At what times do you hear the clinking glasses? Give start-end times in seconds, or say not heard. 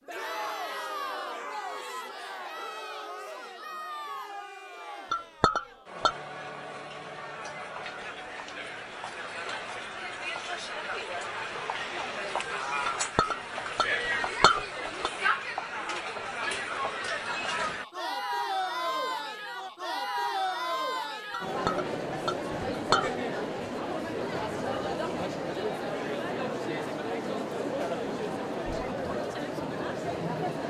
5.1-6.2, 12.8-15.1, 21.3-23.1.